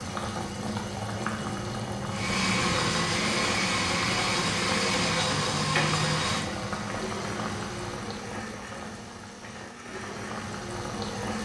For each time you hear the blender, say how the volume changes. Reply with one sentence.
You can hear the blender from 2.1 to 11.3 s, getting quieter.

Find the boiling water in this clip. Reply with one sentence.
You can hear the boiling water from 0.0 to 11.3 s.